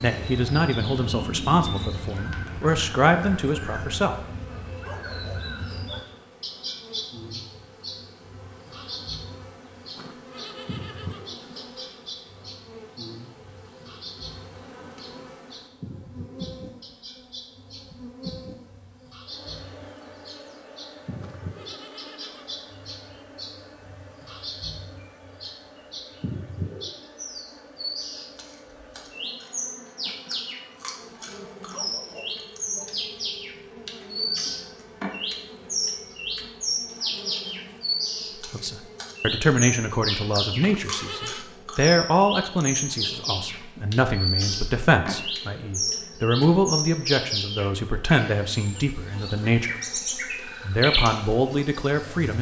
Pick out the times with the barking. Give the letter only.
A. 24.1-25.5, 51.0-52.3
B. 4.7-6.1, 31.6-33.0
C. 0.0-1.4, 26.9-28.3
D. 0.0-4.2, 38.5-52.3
B.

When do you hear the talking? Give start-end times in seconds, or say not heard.
0.0-4.2, 38.5-52.3.